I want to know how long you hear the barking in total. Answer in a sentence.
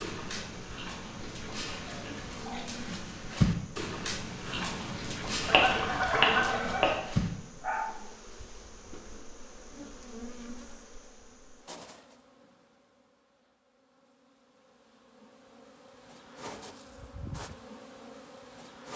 The barking can be heard for 8 seconds in total.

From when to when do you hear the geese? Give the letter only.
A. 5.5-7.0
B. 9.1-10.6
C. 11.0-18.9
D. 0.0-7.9
A.